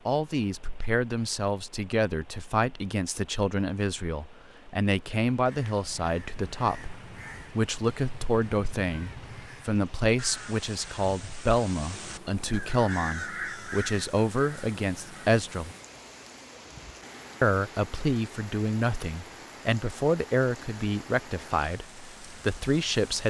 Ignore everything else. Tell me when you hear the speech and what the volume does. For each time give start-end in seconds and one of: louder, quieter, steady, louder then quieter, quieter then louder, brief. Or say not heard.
0.1-15.8 steady
17.4-23.2 steady.